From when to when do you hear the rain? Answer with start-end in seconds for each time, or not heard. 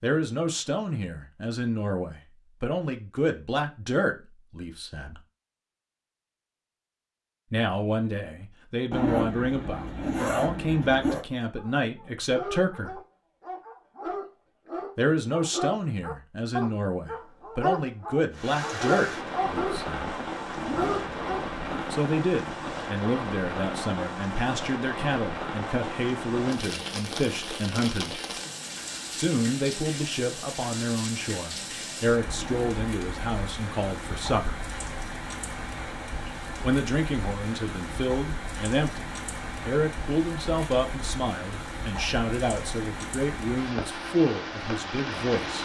18.3-45.6.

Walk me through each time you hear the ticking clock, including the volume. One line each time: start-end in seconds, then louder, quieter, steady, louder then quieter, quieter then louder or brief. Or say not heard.
not heard.